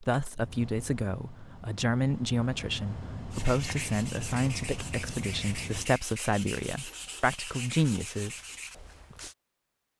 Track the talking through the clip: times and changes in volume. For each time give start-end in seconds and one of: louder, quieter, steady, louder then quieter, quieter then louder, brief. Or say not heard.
0.0-8.3 steady.